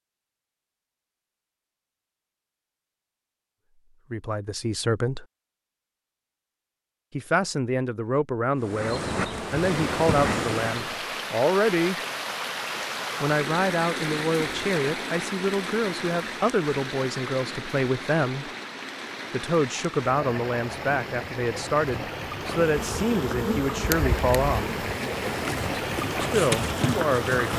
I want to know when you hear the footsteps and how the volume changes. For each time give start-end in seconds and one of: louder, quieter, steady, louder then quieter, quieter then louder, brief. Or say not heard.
not heard.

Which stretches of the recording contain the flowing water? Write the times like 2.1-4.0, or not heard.
9.2-27.5.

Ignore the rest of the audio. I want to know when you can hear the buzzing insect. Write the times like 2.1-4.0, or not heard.
8.6-11.0, 22.4-27.5.